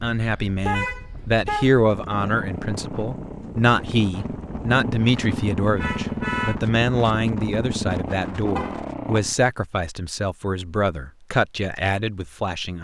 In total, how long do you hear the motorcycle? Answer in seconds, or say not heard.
7 s.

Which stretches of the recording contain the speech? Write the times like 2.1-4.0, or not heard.
0.0-12.7.